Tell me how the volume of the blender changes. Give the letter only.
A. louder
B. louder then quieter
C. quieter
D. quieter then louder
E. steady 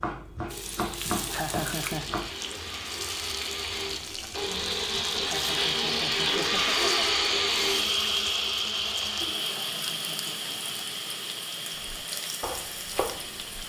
B.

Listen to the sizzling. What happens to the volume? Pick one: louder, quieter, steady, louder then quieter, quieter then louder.
steady.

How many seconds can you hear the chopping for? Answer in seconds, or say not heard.
4 s.